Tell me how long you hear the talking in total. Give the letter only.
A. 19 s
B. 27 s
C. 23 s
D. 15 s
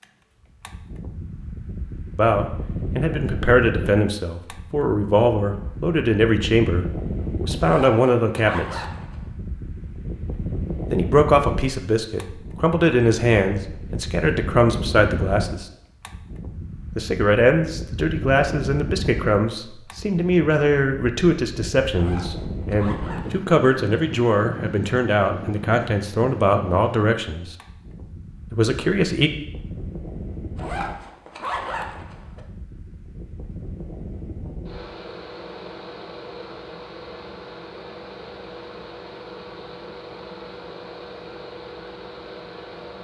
C.